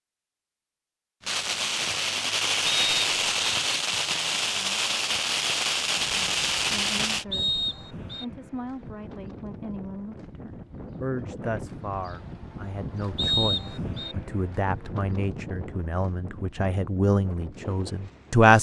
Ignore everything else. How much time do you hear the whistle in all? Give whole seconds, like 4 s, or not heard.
3 s.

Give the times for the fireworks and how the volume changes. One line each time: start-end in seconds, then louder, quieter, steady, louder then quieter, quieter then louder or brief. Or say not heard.
1.2-7.2 steady.